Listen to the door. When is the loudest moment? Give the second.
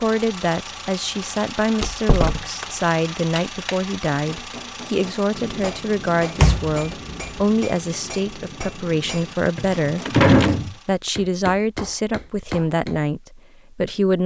10 s.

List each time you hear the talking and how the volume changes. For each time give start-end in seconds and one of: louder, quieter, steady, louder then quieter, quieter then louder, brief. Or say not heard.
0.0-14.2 steady.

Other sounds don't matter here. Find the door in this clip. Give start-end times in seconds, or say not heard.
1.8-2.6, 6.3-7.4, 9.6-10.8.